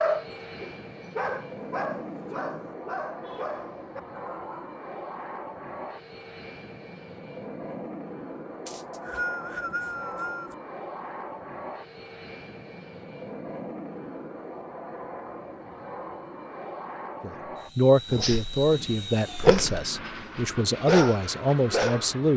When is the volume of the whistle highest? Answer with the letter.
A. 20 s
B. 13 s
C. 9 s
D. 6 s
C.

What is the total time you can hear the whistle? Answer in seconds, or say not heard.
2 s.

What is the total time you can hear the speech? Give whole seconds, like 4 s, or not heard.
5 s.